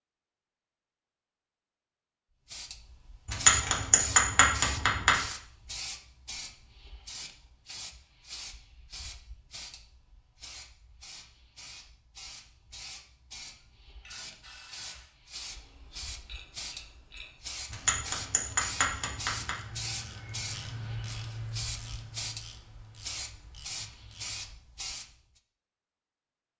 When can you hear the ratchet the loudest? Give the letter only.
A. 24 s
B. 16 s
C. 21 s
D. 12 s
C.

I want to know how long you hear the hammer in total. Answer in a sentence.
You can hear the hammer for 4 seconds altogether.